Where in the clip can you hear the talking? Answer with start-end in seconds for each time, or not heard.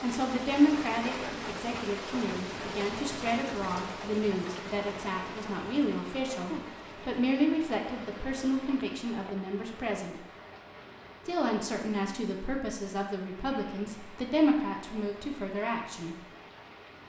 0.0-10.2, 11.2-16.2.